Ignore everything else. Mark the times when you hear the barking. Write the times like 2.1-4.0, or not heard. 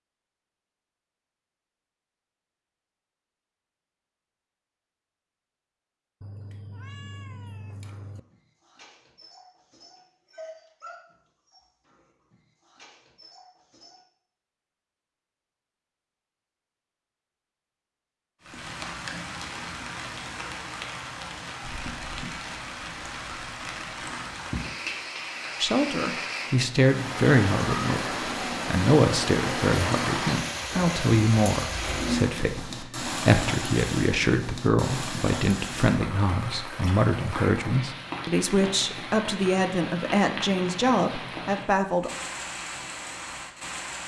7.8-14.0.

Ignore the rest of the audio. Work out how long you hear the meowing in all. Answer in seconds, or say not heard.
2 s.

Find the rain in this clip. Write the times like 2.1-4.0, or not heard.
18.4-44.0.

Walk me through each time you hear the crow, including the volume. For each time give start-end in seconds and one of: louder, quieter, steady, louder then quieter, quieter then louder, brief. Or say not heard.
not heard.